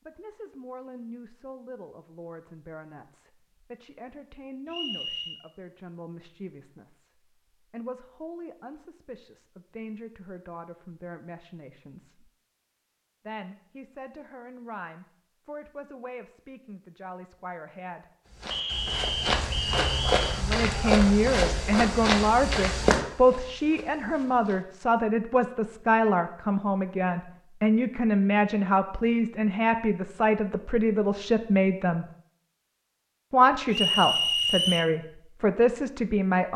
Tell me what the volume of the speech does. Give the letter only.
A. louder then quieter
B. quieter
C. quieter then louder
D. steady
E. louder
E.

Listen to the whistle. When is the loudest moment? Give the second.
34 s.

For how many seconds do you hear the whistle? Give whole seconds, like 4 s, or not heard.
4 s.